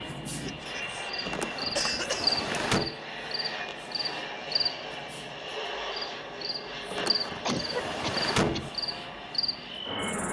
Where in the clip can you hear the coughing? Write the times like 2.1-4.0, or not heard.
0.3-2.4, 7.5-8.7.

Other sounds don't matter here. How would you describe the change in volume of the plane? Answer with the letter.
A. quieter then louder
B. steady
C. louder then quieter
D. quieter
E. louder
B.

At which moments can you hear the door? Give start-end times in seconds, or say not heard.
1.2-3.0, 6.9-8.7.